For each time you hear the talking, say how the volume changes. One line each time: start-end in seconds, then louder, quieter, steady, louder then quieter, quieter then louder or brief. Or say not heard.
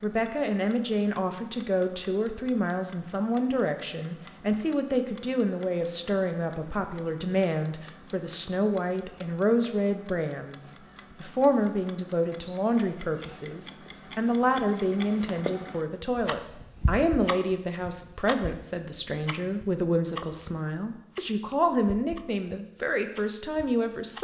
0.0-24.1 steady.